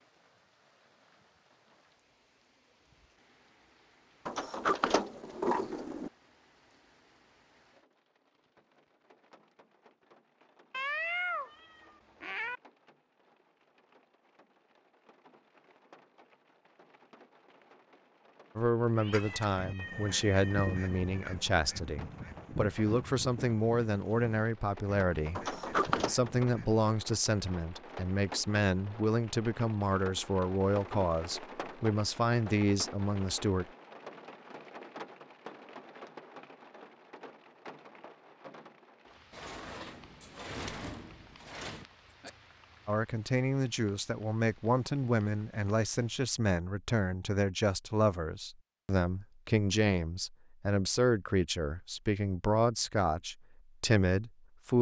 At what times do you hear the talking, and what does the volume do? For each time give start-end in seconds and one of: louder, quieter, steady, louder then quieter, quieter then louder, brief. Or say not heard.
18.6-33.6 steady
42.9-54.7 steady.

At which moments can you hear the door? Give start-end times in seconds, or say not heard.
4.2-6.1, 25.4-26.1, 39.3-41.9.